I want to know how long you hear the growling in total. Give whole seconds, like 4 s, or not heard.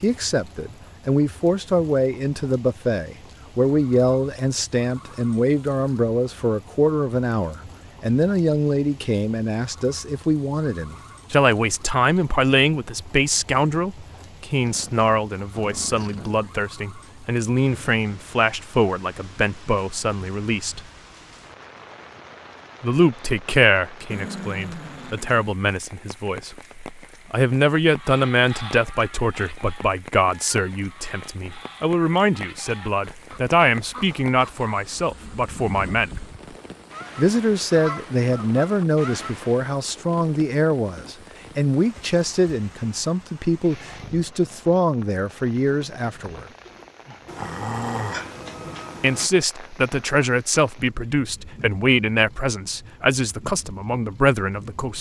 5 s.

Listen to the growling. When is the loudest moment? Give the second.
48 s.